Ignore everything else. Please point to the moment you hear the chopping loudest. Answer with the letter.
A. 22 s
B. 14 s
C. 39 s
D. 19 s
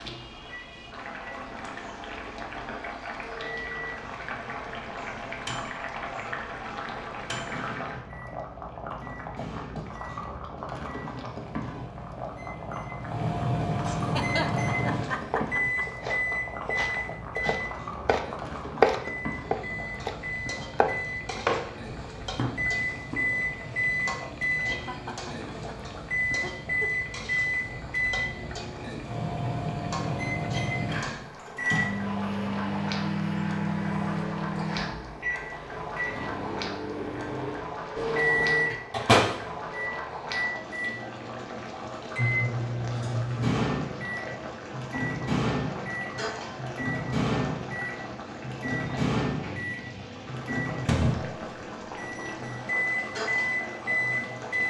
D.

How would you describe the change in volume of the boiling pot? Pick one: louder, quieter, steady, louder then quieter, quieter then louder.
steady.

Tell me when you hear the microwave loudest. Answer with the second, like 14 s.
39 s.